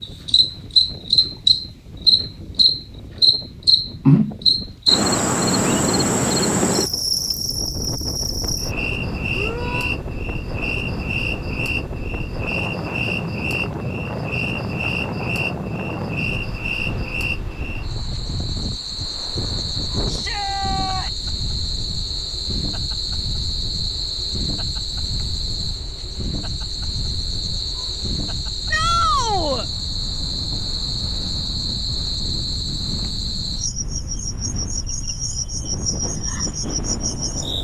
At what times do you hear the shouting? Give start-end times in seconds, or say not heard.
9.3-9.9, 20.1-21.3, 28.7-29.6.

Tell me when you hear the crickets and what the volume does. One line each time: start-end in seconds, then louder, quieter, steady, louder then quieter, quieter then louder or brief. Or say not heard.
0.0-37.5 quieter.